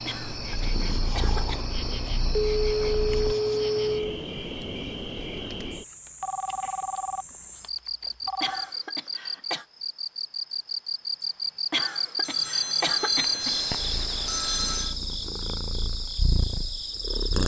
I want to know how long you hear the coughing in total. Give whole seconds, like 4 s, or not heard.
5 s.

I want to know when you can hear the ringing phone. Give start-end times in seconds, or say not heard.
2.4-4.0, 6.0-8.7, 12.2-14.9.